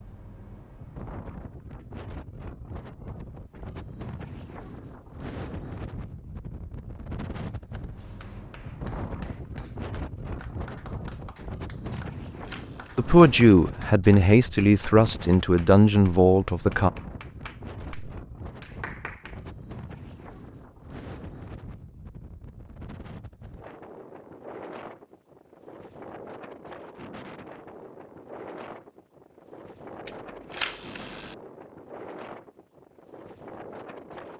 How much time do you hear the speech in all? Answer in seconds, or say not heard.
4 s.